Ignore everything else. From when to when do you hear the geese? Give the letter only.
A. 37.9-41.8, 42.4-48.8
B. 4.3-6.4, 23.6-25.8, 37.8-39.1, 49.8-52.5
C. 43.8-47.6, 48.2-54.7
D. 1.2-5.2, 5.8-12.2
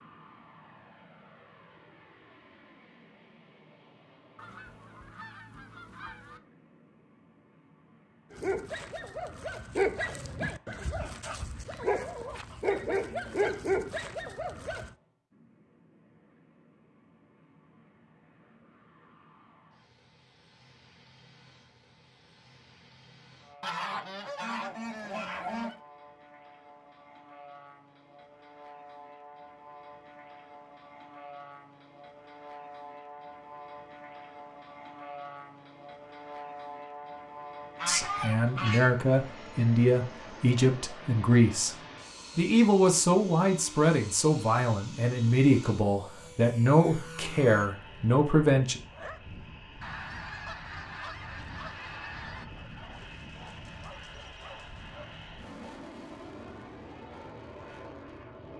B.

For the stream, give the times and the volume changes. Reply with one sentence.
You can't hear the stream here.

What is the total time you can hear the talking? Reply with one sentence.
The talking can be heard for 10 seconds in total.